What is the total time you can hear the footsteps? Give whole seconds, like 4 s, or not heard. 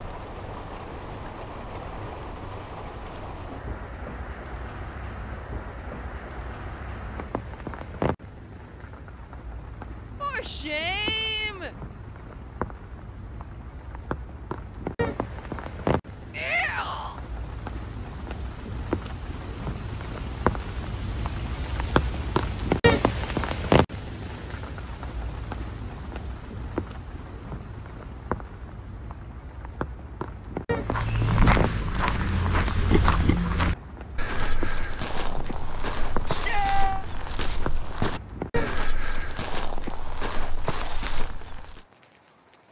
11 s.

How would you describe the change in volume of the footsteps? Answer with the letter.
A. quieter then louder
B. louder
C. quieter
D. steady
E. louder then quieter
C.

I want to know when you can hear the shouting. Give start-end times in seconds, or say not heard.
10.2-11.8, 16.3-17.2, 36.2-37.0.